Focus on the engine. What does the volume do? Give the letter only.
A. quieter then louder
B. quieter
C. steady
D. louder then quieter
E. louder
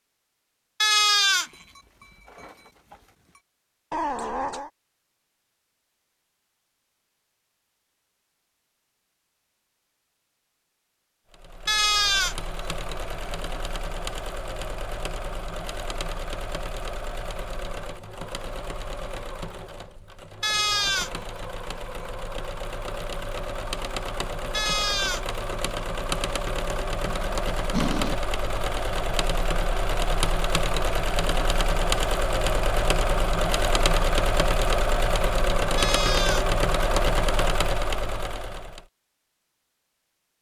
E.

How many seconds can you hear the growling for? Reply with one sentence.
You can hear the growling for 2 seconds altogether.